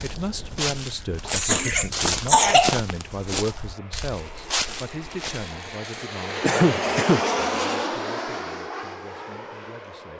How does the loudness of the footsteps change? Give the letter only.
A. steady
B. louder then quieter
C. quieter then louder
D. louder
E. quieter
E.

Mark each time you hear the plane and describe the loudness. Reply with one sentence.
You can hear the plane from 0.0 to 10.1 s, getting louder then quieter.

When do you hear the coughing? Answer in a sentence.
You can hear the coughing from 1.2 to 2.8 s and from 6.4 to 7.2 s.